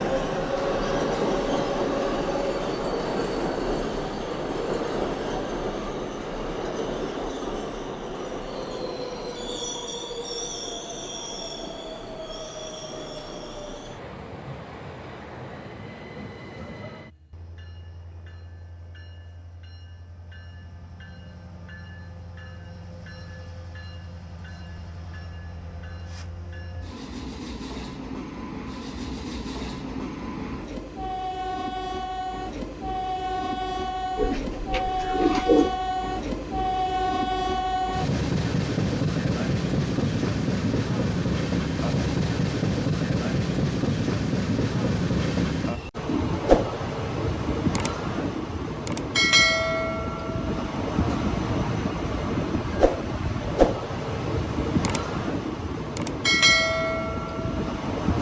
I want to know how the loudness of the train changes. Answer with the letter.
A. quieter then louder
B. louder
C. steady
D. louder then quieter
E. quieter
A.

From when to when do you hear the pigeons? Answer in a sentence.
The pigeons can be heard from 34.1 to 35.8 s.